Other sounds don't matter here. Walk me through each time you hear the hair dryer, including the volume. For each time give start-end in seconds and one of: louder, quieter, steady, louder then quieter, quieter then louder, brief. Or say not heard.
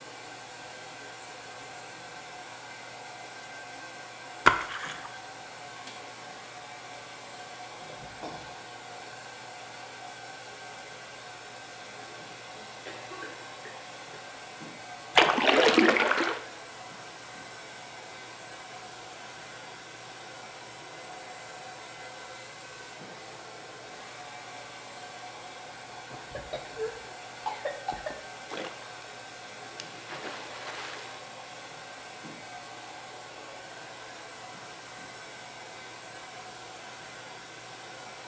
0.0-38.2 steady.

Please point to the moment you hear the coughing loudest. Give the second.
28 s.